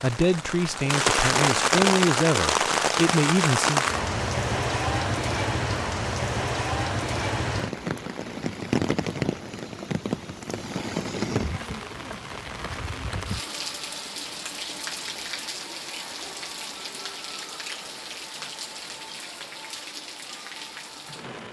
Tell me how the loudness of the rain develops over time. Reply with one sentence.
The volume of the rain goes down.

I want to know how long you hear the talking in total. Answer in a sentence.
You can hear the talking for 4 seconds altogether.